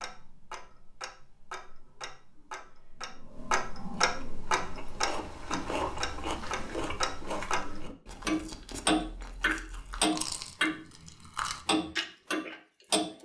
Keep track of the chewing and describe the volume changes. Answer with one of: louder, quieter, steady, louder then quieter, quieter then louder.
quieter then louder.